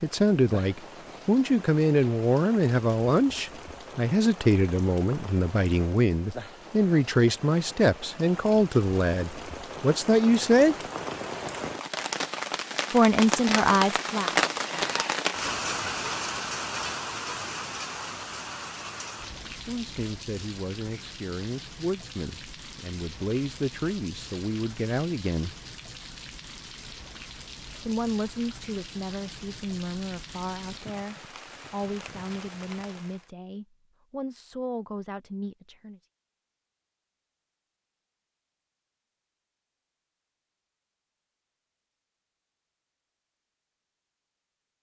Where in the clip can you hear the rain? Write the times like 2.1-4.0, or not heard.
0.0-33.3.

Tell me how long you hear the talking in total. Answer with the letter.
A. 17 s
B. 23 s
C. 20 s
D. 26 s
D.